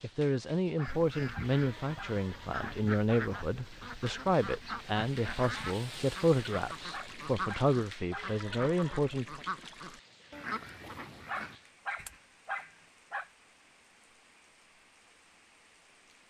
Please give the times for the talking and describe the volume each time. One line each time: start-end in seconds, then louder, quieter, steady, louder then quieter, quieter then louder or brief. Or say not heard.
0.0-9.4 steady.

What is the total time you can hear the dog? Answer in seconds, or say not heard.
6 s.